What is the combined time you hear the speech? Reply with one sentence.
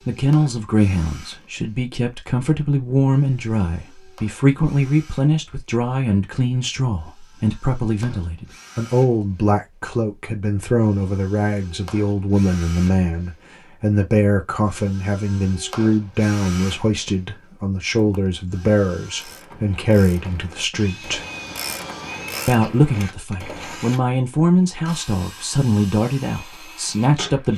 The speech can be heard for 26 seconds in total.